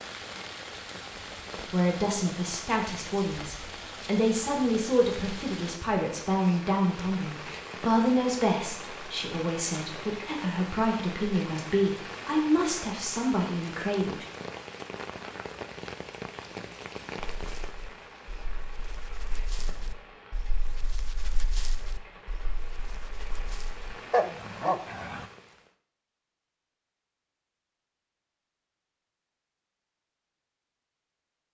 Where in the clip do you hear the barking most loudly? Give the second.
24 s.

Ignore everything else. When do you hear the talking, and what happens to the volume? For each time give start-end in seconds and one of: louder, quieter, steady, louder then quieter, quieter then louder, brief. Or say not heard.
1.7-14.2 steady.